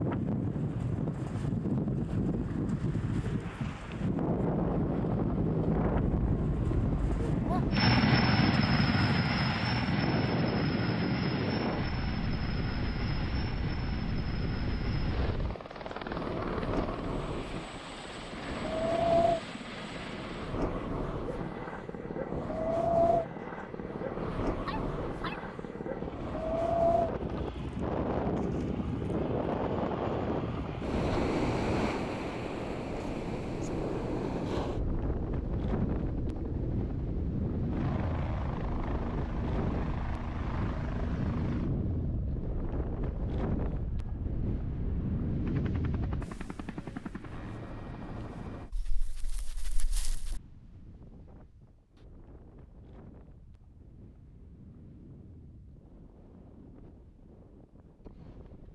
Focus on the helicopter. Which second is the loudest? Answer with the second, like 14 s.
8 s.